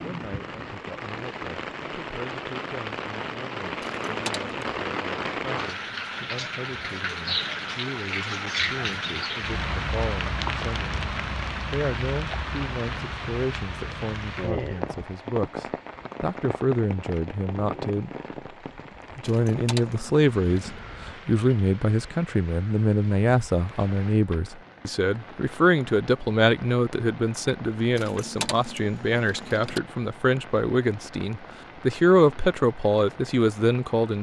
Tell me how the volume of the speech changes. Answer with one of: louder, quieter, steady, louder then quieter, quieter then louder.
louder.